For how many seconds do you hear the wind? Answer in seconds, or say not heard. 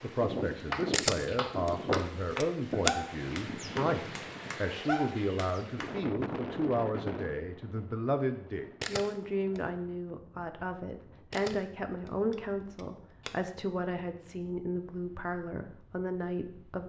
17 s.